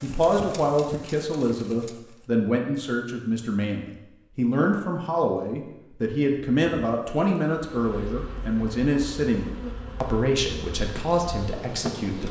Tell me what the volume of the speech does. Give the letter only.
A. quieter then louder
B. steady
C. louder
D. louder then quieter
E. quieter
B.